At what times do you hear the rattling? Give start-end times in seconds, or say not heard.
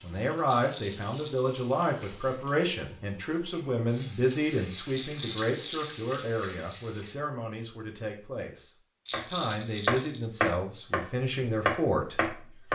0.5-1.5, 4.9-5.8, 9.1-10.2.